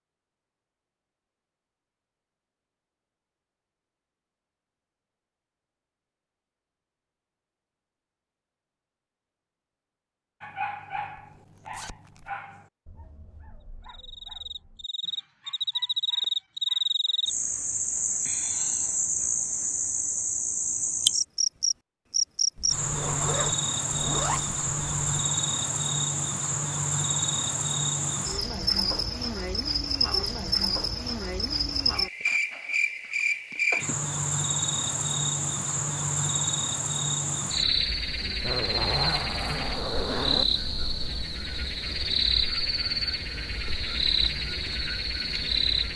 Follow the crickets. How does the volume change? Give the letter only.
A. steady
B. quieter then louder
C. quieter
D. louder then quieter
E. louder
A.